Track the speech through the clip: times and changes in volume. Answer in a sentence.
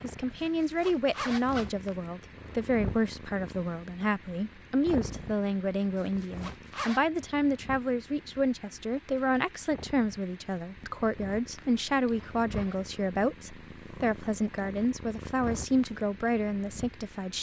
The speech can be heard from 0.0 to 17.3 s, at a steady volume.